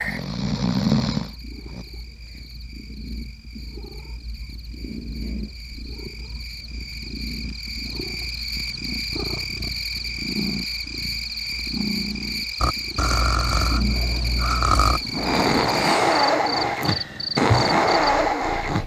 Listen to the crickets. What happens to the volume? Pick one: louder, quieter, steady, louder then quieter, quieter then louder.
louder.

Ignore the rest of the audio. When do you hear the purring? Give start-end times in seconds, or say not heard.
0.0-18.8.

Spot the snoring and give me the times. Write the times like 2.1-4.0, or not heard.
0.0-1.9, 12.6-18.8.